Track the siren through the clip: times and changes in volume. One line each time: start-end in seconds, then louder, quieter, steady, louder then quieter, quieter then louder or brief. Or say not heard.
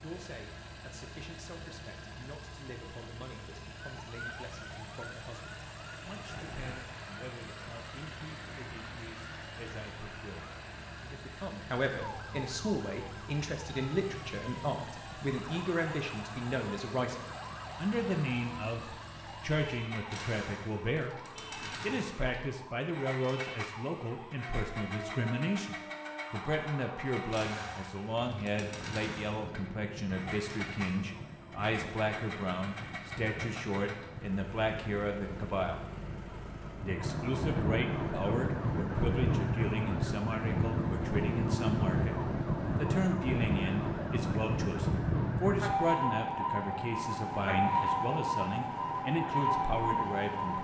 4.0-50.6 louder.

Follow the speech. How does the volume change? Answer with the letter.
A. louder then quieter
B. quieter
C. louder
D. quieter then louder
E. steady
C.